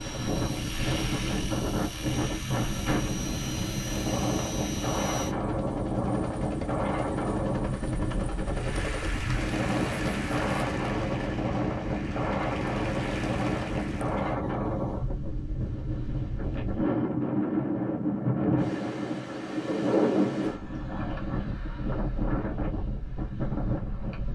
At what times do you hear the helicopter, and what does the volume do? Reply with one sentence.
You can hear the helicopter from 0.0 to 10.7 s, at a steady volume.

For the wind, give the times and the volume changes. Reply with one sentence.
You can hear the wind from 0.0 to 24.3 s, at a steady volume.